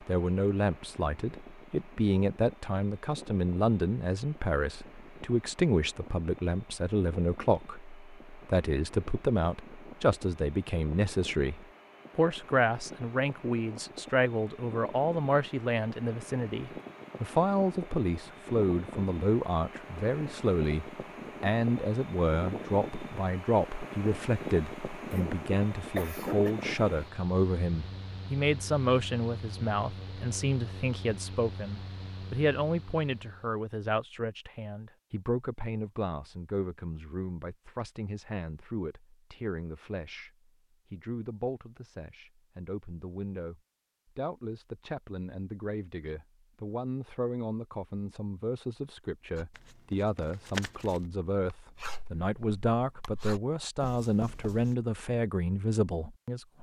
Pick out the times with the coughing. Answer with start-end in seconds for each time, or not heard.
25.1-26.6.